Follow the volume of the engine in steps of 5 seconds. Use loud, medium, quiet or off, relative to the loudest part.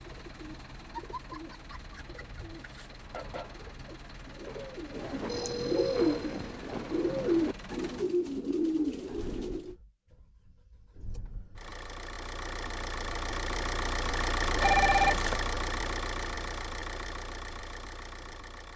quiet, quiet, loud, loud.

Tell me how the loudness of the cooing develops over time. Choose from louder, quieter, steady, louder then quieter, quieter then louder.
louder.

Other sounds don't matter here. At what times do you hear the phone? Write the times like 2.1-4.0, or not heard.
5.2-6.5, 14.6-15.4.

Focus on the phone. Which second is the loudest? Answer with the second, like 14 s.
15 s.